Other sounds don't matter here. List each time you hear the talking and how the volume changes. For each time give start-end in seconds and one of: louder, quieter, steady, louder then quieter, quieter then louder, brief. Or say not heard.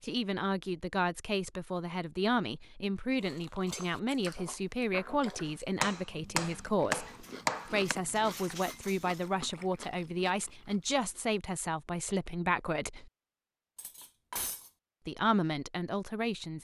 0.0-13.1 steady
15.1-16.6 brief.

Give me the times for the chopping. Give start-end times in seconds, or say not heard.
5.5-8.0.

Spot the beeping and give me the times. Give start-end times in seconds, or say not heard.
not heard.